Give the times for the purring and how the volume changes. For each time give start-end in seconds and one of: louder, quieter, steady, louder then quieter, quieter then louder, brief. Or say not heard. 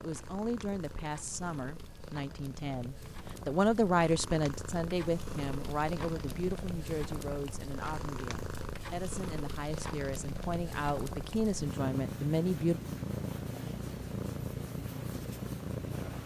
0.0-16.2 louder.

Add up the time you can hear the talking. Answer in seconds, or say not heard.
13 s.